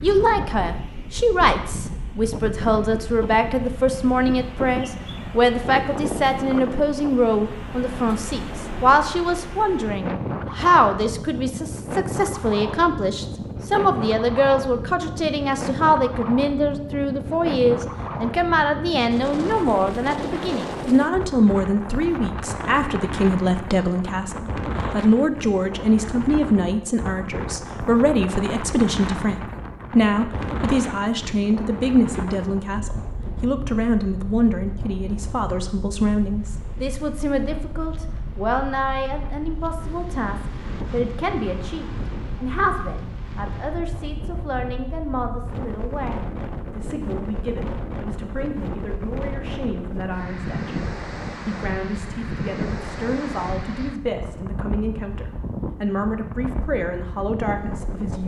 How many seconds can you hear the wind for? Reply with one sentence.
The wind can be heard for 58 seconds in total.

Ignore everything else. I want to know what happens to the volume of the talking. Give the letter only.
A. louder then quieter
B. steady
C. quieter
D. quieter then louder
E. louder
C.